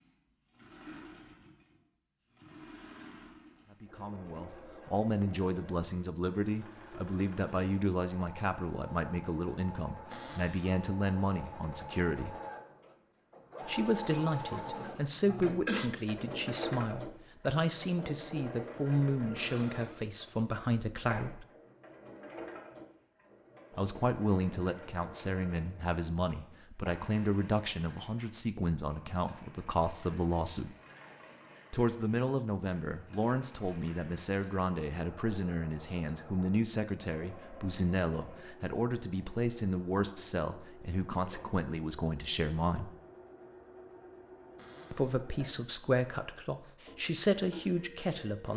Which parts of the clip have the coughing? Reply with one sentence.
You can hear the coughing from 14.5 to 15.9 s.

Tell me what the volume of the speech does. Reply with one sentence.
The loudness of the speech stays about the same.